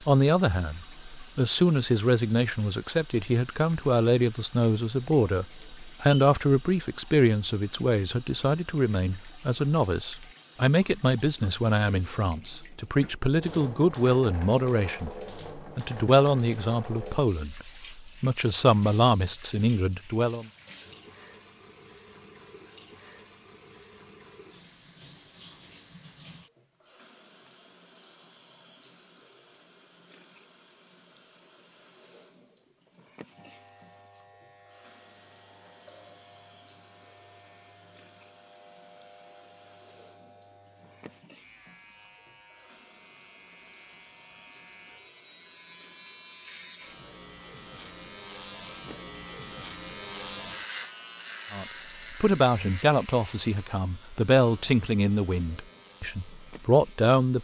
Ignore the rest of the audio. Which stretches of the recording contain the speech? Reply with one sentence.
The speech can be heard from 0.1 to 20.4 s and from 51.5 to 57.3 s.